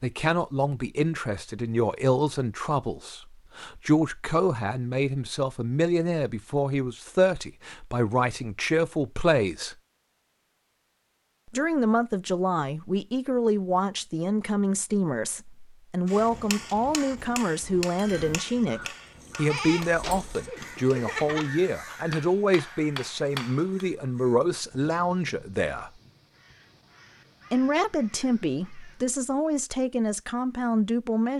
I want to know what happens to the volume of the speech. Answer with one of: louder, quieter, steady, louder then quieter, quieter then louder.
steady.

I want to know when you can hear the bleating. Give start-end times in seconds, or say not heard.
19.4-21.5.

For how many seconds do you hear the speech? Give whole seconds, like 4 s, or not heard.
28 s.